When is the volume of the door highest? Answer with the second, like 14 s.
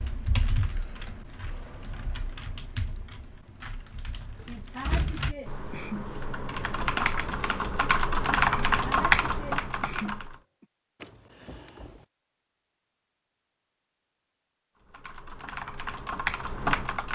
5 s.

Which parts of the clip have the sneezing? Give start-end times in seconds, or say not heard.
4.5-6.2, 8.8-10.7.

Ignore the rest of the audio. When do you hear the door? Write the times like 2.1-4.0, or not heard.
4.4-6.2, 11.0-12.0.